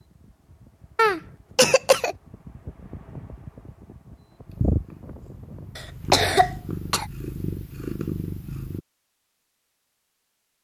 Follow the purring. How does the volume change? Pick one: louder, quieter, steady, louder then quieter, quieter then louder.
louder.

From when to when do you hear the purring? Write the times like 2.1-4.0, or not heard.
4.5-8.8.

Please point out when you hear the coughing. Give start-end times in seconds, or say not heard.
0.9-2.1, 5.8-7.0.